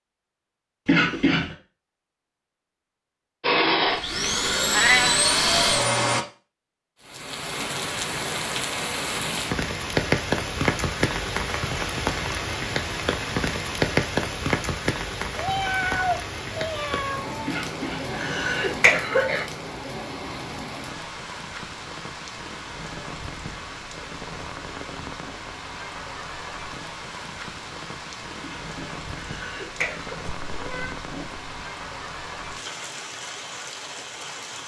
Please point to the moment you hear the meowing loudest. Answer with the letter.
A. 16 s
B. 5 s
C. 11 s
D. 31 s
B.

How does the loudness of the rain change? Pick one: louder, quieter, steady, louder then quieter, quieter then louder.
quieter.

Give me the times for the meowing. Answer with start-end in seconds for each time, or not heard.
4.7-5.2, 15.3-17.3, 30.4-31.5.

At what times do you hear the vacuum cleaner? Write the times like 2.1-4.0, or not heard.
3.4-6.2.